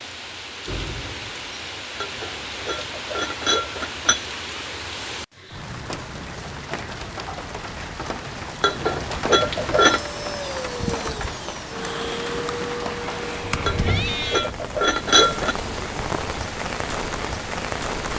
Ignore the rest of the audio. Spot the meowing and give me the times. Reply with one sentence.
You can hear the meowing from 13.4 to 14.5 s.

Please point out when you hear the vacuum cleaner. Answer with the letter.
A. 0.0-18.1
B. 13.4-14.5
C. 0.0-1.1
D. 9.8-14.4
D.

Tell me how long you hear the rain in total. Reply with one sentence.
The rain can be heard for 18 seconds in total.